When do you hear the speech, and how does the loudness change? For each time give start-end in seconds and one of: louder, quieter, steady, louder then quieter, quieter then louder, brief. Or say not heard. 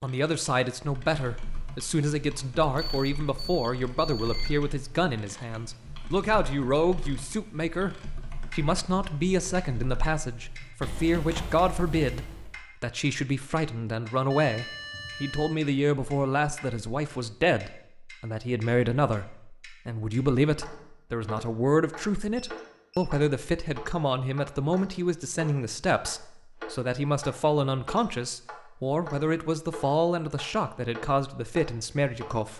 0.0-32.5 steady.